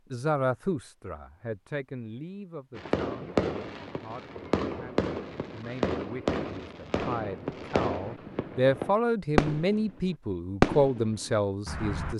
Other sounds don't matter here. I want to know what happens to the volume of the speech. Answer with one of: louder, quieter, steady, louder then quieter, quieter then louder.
quieter then louder.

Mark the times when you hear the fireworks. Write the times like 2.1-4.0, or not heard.
2.8-12.1.